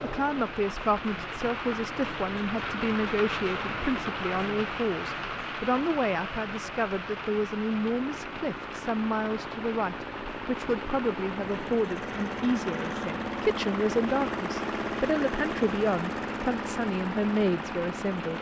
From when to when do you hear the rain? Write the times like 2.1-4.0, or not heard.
0.0-18.3.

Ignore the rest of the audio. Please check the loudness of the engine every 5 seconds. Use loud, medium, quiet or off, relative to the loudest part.
off, medium, loud, loud.